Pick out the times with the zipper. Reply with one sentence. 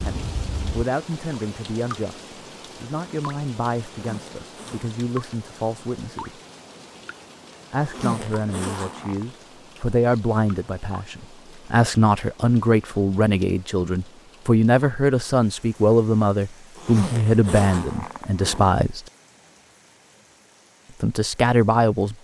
You can hear the zipper from 4.0 to 5.0 s, from 7.8 to 9.2 s and from 16.8 to 18.8 s.